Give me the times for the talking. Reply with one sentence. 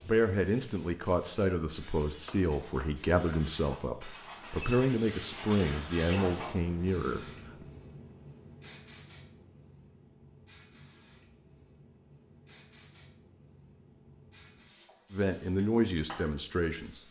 The talking can be heard from 0.0 to 7.2 s and from 15.1 to 17.0 s.